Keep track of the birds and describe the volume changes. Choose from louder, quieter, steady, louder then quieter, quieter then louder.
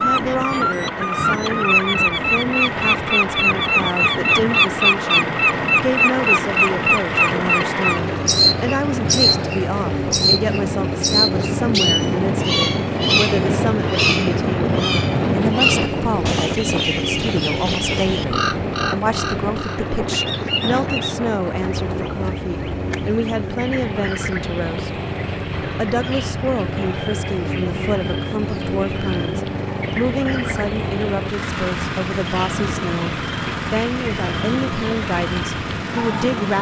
quieter.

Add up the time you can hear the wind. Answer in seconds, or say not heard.
23 s.